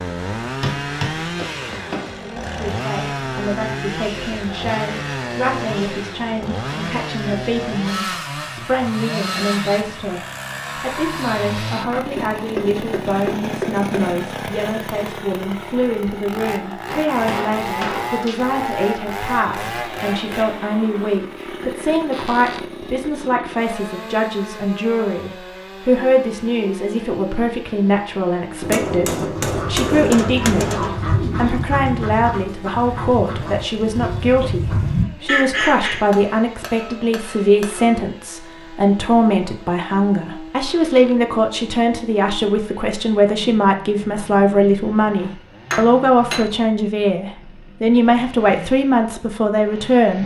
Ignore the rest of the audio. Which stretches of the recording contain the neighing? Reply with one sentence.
The neighing can't be heard in this clip.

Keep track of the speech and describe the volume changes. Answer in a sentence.
The volume of the speech goes up.